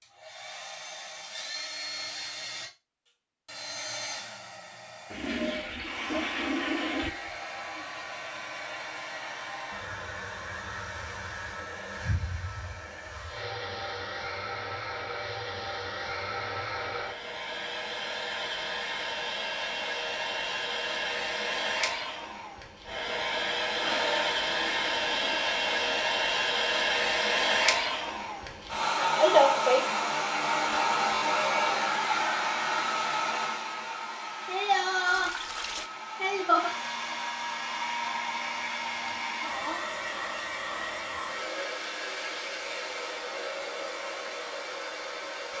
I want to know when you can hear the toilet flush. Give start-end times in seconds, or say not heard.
5.1-7.1, 23.8-26.1, 35.0-35.9.